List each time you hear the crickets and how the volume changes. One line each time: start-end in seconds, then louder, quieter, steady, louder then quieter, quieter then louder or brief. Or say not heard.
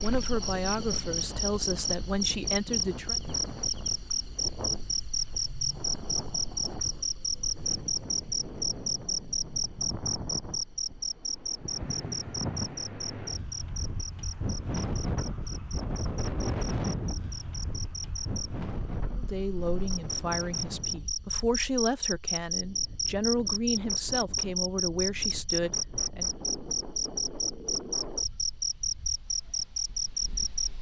0.0-30.7 quieter then louder.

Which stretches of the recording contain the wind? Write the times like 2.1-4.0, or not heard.
0.1-30.7.